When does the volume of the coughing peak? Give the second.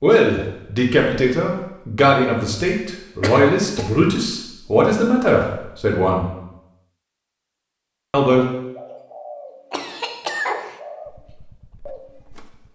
10 s.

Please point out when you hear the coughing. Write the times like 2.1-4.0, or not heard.
3.2-4.0, 9.7-10.8.